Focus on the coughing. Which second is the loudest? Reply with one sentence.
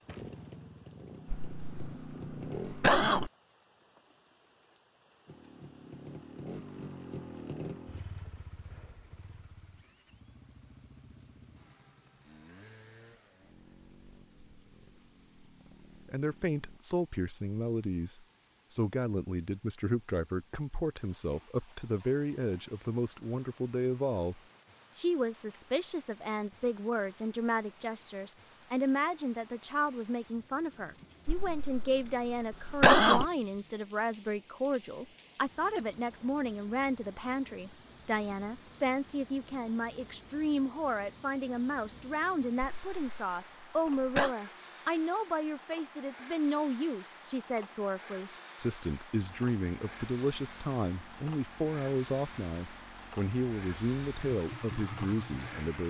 The volume of the coughing peaks at 33 seconds.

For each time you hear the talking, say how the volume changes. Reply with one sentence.
The talking can be heard from 16.1 to 55.8 s, at a steady volume.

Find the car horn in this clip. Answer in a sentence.
You can't hear the car horn here.